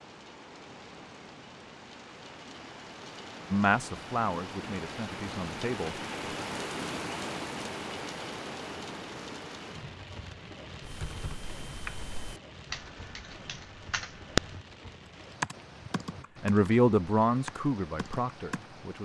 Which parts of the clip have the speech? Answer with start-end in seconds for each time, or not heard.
3.5-6.0, 16.4-19.0.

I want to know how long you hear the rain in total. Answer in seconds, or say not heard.
19 s.